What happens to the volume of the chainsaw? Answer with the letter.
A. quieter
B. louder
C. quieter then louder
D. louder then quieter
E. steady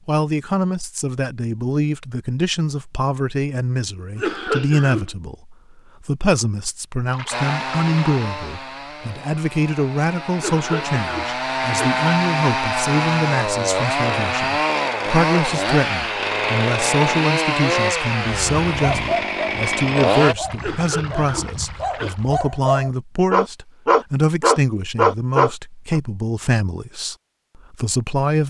B.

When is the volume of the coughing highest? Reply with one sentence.
The loudest moment of the coughing is at 4 seconds.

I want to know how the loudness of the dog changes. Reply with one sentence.
The loudness of the dog goes down, then up.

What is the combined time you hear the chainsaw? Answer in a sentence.
You can hear the chainsaw for 13 seconds altogether.